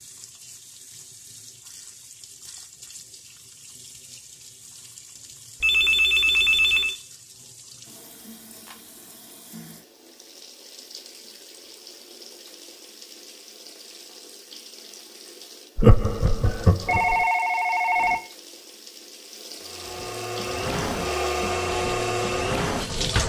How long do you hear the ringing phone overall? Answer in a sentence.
You can hear the ringing phone for 3 seconds altogether.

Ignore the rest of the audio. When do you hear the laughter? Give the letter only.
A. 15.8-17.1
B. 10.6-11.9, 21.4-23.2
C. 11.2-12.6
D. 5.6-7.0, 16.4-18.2
A.